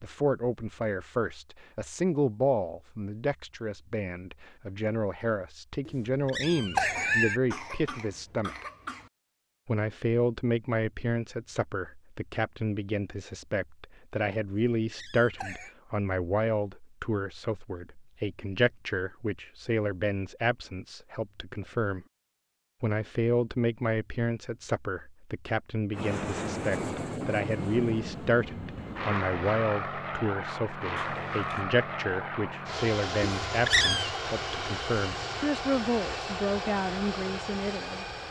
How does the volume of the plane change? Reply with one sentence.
The volume of the plane stays about the same.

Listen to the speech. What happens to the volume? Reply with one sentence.
The volume of the speech stays about the same.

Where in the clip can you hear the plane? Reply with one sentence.
The plane can be heard from 25.9 to 38.2 s.